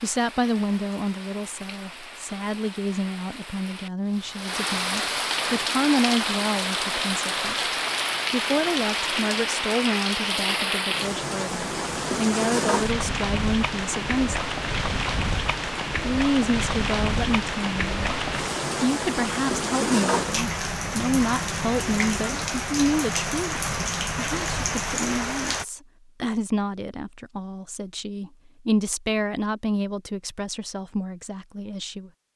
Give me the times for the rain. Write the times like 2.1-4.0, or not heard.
0.0-25.6.